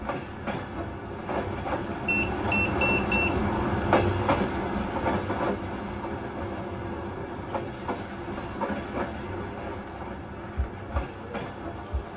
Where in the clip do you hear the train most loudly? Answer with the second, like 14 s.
4 s.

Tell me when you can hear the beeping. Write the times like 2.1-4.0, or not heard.
2.0-3.5.